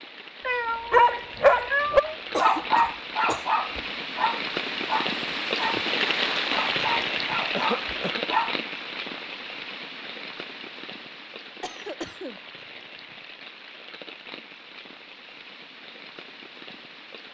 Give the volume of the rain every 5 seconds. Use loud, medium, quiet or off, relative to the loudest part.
medium, loud, quiet, quiet.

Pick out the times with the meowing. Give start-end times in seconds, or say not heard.
0.4-2.2.